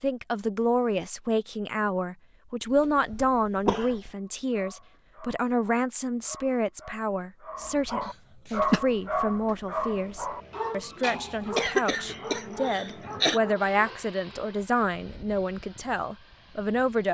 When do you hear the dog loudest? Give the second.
9 s.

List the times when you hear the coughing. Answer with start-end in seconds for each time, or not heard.
2.7-4.1, 8.1-8.8, 11.6-13.4.